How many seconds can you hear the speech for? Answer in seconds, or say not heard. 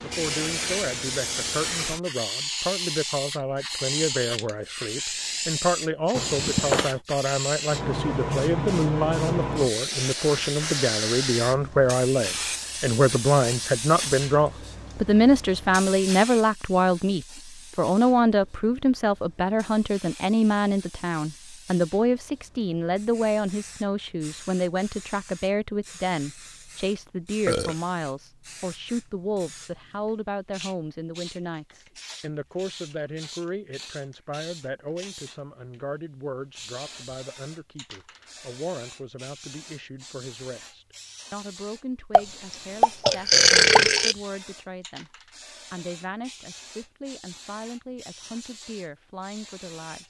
50 s.